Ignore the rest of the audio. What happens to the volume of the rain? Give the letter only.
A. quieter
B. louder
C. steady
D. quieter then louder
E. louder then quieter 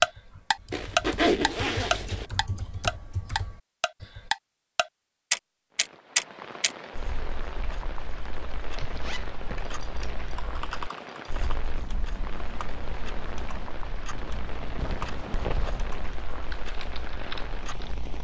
C.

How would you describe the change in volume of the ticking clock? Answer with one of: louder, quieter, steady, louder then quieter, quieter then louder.
quieter.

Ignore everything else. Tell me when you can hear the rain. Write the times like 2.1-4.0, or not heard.
5.7-18.1.